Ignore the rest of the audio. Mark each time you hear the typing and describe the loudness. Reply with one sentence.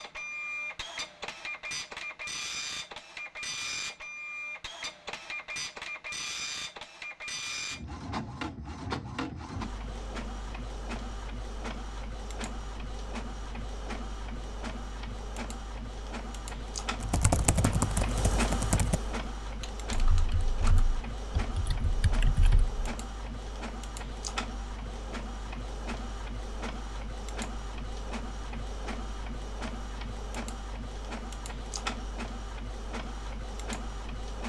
The typing can be heard from 17.0 to 22.9 s, getting quieter then louder.